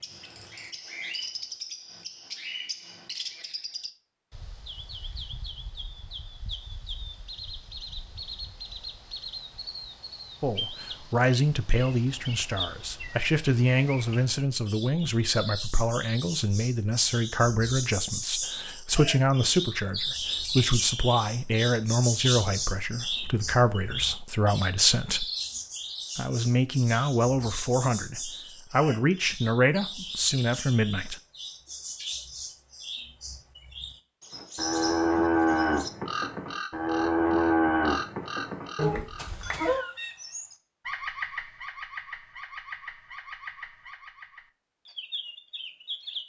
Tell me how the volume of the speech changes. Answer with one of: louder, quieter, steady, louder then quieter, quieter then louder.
steady.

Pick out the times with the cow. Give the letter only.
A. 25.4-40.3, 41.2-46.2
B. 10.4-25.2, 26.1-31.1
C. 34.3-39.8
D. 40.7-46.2
C.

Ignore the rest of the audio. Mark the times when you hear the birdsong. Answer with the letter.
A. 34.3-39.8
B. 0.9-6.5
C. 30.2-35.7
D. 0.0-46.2
D.